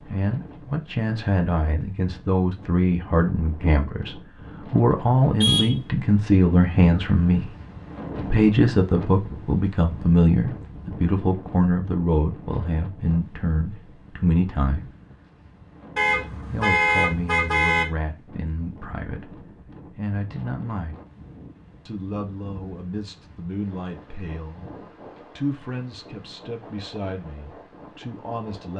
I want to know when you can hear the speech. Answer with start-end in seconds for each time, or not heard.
0.0-7.5, 8.2-14.9, 16.5-20.9, 21.9-28.7.